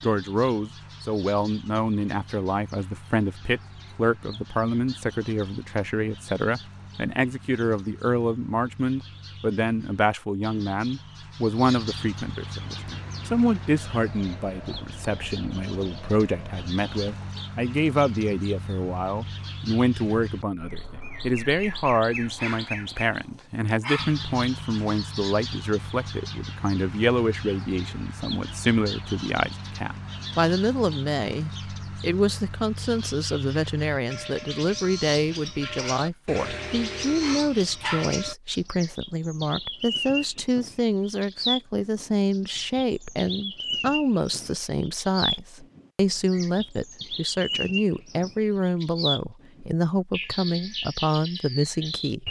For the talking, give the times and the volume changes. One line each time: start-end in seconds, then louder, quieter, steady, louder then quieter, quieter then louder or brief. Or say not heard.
0.0-52.2 steady.